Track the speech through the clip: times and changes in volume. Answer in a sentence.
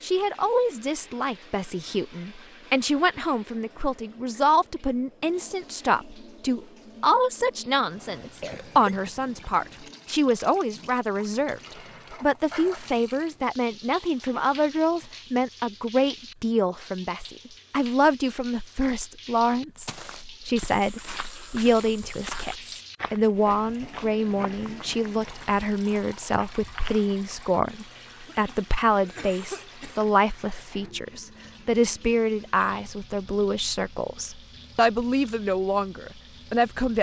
You can hear the speech from 0.0 to 36.9 s, at a steady volume.